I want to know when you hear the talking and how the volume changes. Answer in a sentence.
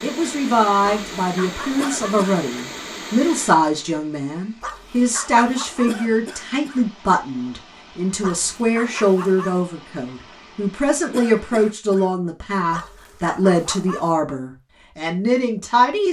The talking can be heard from 0.0 to 16.0 s, at a steady volume.